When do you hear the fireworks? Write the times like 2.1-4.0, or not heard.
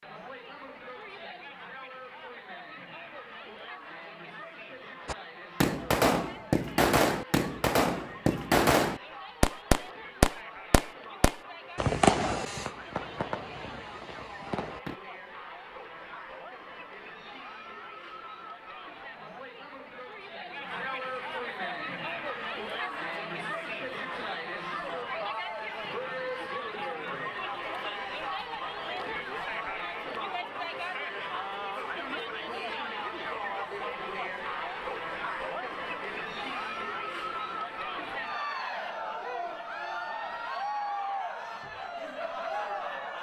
5.0-15.0.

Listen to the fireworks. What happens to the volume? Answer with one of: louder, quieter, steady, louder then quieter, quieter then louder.
quieter.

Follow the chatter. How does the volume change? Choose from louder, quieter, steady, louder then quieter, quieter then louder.
louder.